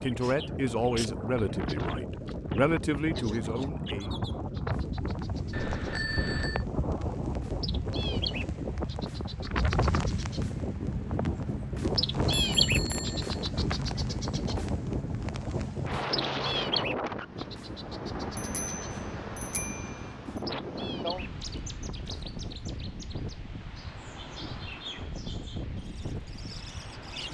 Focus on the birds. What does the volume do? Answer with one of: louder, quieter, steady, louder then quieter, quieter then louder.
louder then quieter.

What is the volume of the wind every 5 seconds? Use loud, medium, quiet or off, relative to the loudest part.
loud, loud, loud, loud, medium, medium.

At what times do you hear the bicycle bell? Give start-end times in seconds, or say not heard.
5.5-6.7, 12.4-13.2, 18.4-19.9.